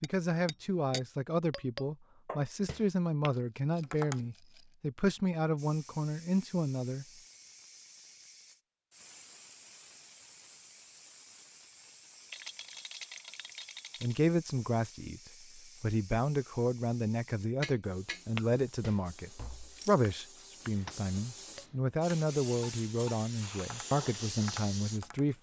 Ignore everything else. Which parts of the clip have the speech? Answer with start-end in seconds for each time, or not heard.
0.0-7.0, 14.0-25.3.